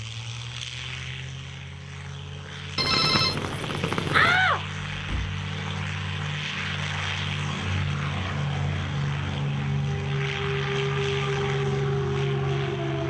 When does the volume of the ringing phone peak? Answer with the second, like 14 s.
3 s.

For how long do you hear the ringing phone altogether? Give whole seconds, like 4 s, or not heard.
2 s.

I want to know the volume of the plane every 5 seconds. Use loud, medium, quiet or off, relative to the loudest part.
medium, loud, loud.